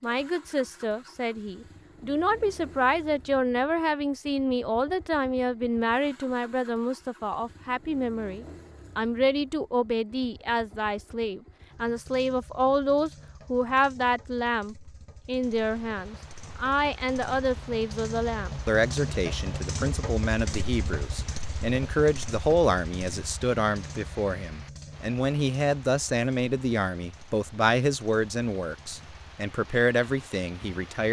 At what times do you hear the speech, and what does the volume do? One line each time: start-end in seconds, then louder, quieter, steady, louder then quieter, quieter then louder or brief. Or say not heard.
0.0-31.0 steady.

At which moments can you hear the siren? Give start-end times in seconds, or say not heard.
not heard.